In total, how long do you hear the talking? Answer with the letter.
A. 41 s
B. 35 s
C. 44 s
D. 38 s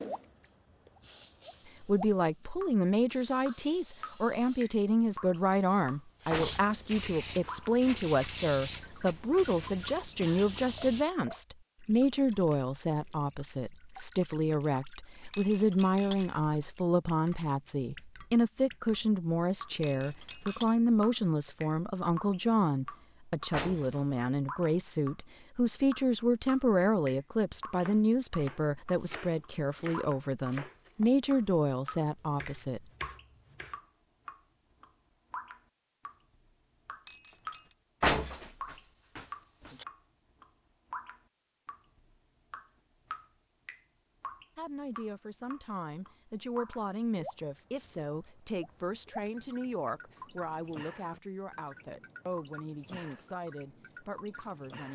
A.